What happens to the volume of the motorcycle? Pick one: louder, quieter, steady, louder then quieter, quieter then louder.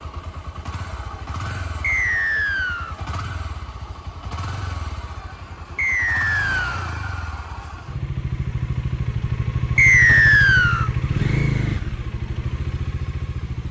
louder.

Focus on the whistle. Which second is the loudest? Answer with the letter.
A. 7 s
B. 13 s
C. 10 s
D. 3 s
C.